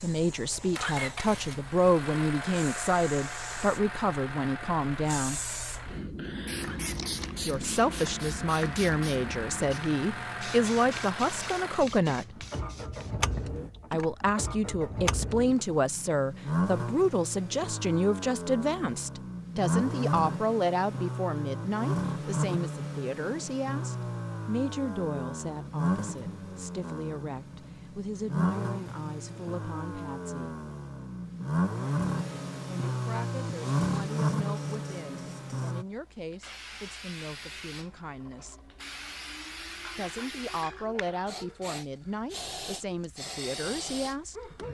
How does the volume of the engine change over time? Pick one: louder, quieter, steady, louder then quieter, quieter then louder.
louder.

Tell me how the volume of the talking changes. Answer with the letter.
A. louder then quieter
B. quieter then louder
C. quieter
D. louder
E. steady
C.